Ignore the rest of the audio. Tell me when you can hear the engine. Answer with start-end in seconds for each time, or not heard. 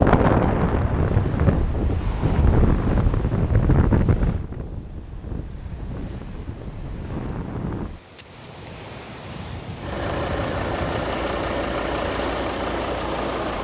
9.8-13.5.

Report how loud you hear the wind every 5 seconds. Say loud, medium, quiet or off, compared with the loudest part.
loud, quiet, medium.